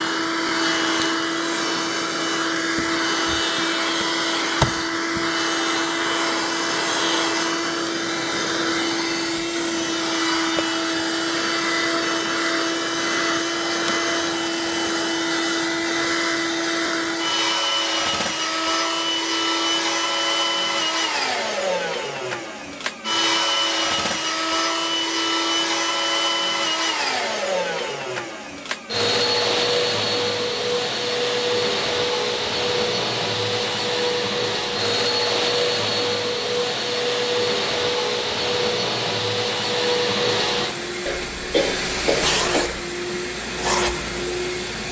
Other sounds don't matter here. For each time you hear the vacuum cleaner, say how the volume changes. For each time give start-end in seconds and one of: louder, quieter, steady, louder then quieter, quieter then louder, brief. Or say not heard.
0.0-44.8 steady.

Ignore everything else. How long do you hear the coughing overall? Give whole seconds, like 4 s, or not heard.
2 s.